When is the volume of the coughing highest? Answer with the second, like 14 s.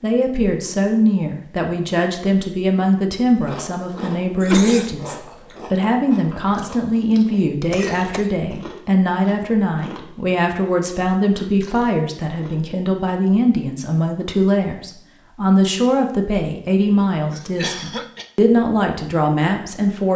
5 s.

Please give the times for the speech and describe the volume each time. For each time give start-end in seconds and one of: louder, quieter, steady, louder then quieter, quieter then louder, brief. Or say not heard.
0.0-20.1 steady.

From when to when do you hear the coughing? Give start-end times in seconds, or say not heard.
4.4-5.0, 7.7-8.3, 17.3-18.2.